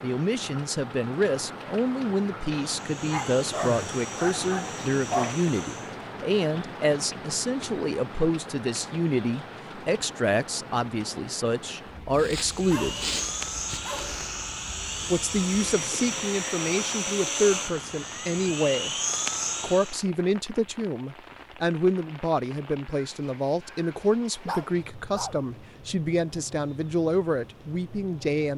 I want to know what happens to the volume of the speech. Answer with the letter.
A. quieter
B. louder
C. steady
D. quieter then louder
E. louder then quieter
C.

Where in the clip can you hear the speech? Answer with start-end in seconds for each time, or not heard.
0.0-13.0, 15.1-18.9, 19.6-28.5.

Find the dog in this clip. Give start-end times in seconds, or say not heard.
3.0-5.5, 12.1-14.3, 24.4-25.4.